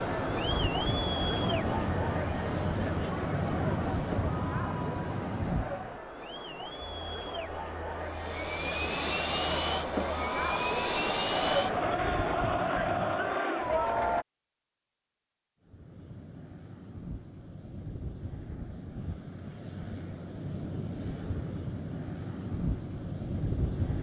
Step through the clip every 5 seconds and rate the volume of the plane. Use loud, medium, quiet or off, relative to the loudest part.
loud, loud, loud, medium, loud.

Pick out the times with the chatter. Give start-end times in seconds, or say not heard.
0.0-14.2.